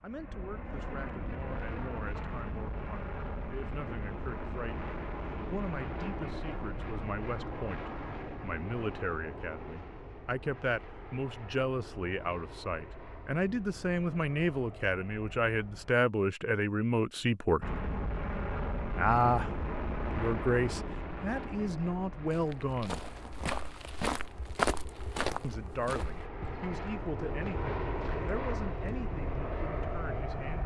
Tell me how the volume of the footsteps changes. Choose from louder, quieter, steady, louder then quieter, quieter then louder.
louder then quieter.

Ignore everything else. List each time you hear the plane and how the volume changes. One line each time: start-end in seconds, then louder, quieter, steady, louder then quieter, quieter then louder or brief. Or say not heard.
0.0-15.9 quieter
17.6-30.6 quieter then louder.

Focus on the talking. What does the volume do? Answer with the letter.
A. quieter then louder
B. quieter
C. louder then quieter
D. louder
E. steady
C.